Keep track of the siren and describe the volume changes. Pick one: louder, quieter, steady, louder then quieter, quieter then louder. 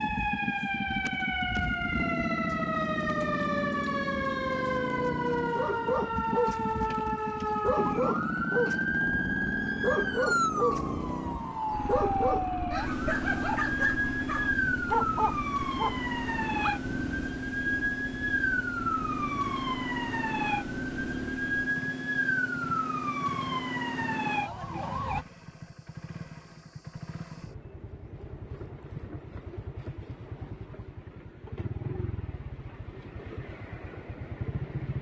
steady.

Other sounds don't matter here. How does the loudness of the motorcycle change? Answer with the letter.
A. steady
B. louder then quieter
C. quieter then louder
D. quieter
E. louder
D.